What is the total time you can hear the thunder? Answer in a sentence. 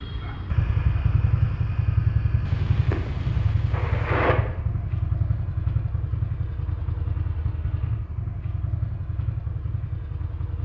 You can hear the thunder for 2 seconds altogether.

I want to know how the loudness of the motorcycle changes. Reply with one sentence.
The loudness of the motorcycle goes down.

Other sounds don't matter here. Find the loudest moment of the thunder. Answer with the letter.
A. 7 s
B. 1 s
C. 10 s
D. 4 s
D.